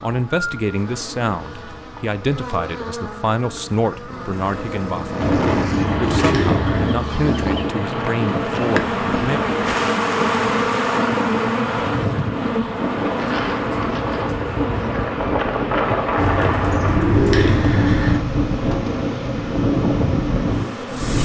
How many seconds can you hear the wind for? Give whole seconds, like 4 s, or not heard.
16 s.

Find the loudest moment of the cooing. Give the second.
17 s.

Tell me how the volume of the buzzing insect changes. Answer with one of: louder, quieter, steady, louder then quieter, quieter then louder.
louder then quieter.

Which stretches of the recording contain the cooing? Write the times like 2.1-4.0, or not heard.
5.2-7.0, 16.1-18.2.